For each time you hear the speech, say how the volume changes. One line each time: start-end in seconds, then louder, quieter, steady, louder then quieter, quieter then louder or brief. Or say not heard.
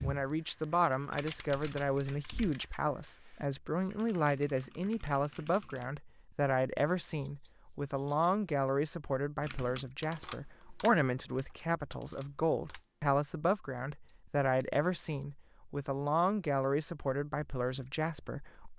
0.0-18.7 steady.